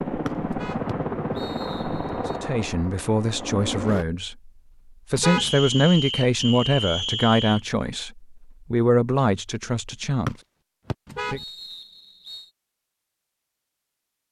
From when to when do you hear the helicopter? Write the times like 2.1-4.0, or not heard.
0.0-4.0.